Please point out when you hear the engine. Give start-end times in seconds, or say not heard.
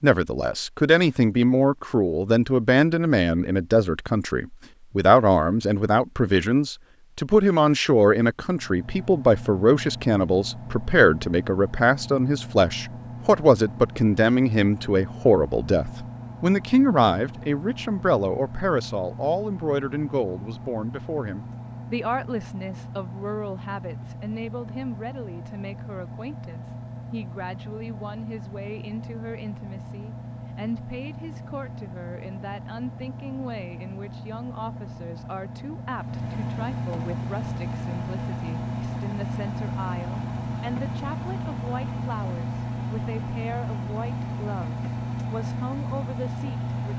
8.4-46.9.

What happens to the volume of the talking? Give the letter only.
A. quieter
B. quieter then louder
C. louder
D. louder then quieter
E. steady
A.